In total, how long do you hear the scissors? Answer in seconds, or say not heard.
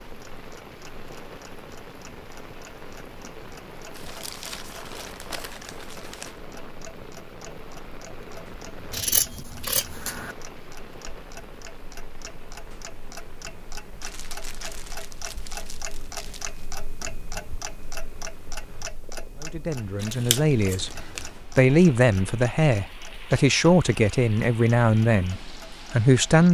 3 s.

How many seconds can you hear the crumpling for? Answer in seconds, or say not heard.
5 s.